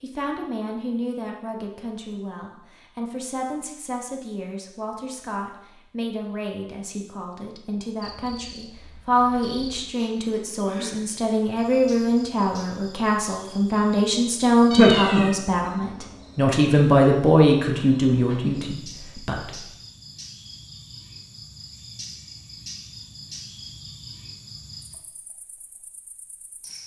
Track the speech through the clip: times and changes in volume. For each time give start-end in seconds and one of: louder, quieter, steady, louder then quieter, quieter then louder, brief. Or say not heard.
0.0-19.6 louder.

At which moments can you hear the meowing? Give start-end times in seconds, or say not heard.
14.7-15.3.